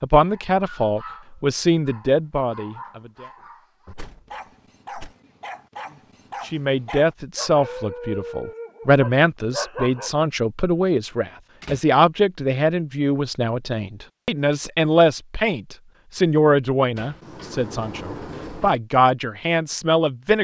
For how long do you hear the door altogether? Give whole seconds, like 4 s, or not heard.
4 s.